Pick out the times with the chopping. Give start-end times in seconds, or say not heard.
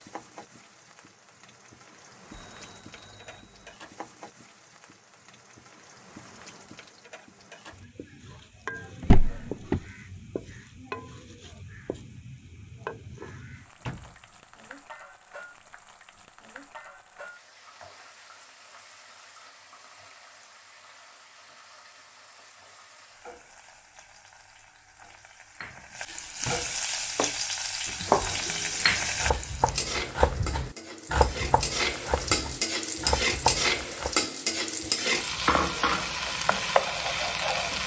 27.1-34.1.